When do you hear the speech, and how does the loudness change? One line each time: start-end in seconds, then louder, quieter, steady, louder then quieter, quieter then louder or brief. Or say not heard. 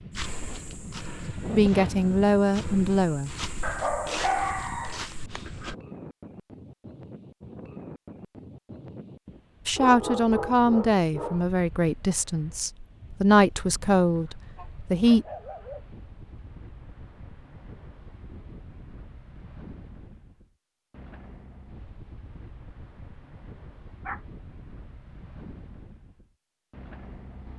1.5-3.3 brief
9.7-15.2 quieter then louder.